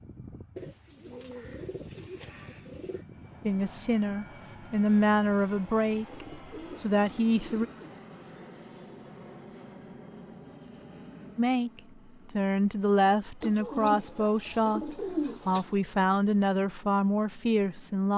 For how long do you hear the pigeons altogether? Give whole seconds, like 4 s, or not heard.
7 s.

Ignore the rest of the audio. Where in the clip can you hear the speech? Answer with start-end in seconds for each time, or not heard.
3.5-7.7, 11.3-18.1.